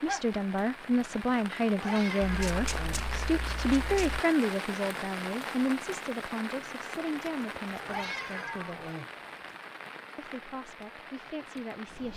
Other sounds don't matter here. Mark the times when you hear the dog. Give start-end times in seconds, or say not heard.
not heard.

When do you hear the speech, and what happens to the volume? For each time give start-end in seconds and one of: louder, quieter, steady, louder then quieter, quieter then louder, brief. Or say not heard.
0.0-8.9 quieter
10.2-12.1 brief.